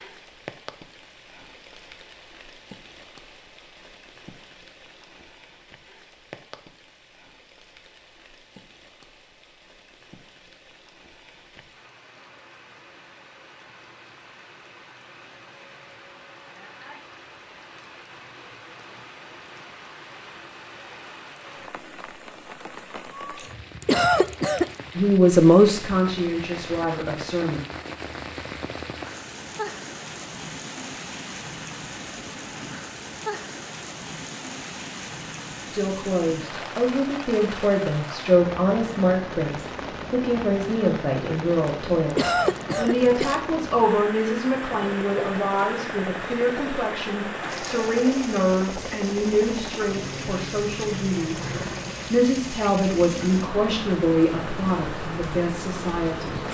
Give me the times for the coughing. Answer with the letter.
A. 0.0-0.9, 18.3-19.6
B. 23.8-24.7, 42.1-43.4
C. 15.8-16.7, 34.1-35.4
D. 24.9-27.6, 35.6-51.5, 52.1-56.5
B.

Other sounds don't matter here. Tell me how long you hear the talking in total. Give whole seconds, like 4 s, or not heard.
23 s.